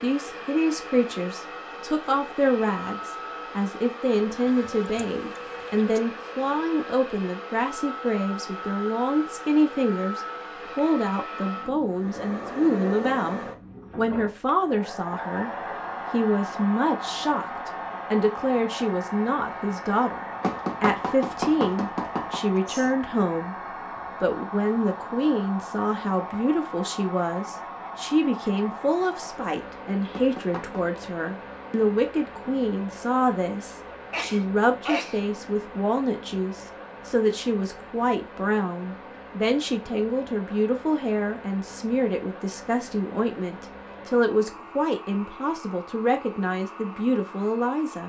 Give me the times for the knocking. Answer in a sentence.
You can hear the knocking from 20.4 to 22.4 s and from 30.1 to 30.9 s.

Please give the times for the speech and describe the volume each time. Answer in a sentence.
You can hear the speech from 0.0 to 15.5 s, at a steady volume; from 16.1 to 23.6 s, at a steady volume; and from 24.2 to 48.0 s, at a steady volume.